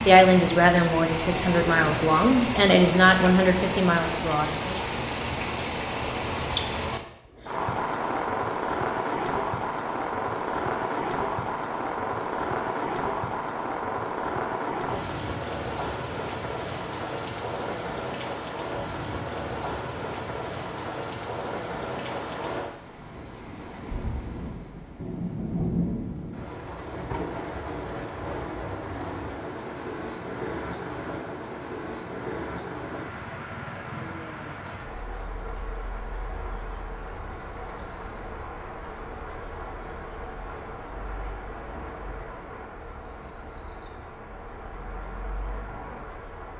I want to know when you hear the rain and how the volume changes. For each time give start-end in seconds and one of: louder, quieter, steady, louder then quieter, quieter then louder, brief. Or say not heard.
0.0-46.5 quieter.